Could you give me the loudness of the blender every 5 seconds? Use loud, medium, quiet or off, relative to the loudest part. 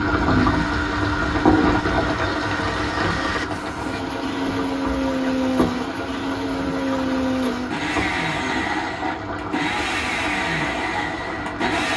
medium, loud, loud.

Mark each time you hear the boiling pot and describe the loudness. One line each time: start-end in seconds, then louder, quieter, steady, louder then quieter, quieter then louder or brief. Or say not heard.
0.0-11.9 quieter.